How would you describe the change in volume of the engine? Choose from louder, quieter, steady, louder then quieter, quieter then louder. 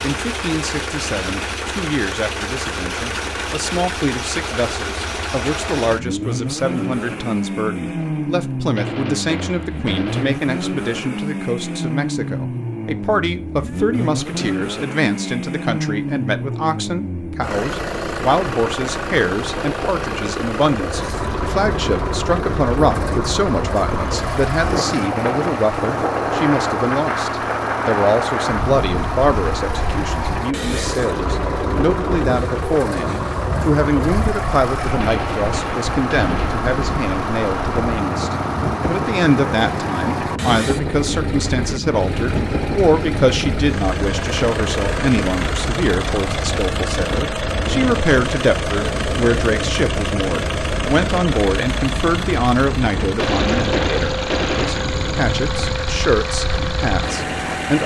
steady.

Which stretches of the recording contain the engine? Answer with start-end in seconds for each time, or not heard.
0.0-57.8.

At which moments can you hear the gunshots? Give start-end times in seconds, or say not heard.
8.8-10.4, 35.0-36.6, 53.1-54.9.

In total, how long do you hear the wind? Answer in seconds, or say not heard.
37 s.